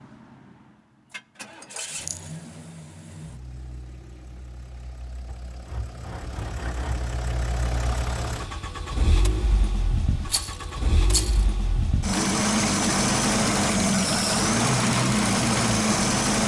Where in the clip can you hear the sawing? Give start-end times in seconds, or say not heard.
5.2-7.0.